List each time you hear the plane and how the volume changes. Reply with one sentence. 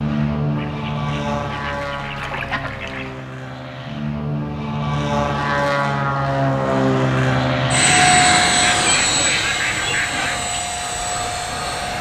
You can hear the plane from 0.0 to 11.9 s, getting louder then quieter.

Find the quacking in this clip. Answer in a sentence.
You can hear the quacking from 0.6 to 3.2 s and from 8.6 to 10.4 s.